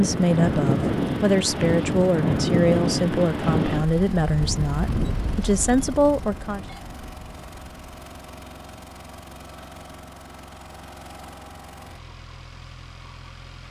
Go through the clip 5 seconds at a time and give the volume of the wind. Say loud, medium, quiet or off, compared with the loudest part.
loud, medium, off.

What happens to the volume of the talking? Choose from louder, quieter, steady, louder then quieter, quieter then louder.
steady.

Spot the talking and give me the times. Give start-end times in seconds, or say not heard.
0.0-6.7.